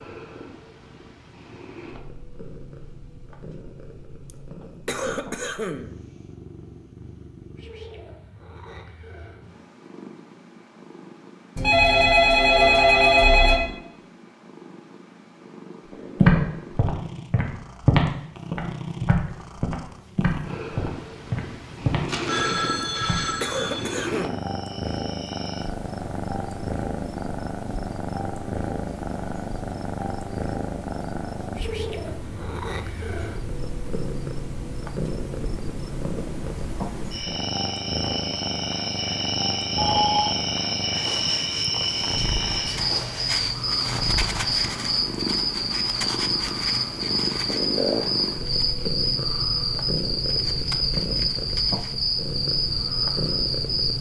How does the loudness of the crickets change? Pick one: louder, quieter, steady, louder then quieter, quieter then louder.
louder.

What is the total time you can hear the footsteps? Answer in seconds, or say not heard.
7 s.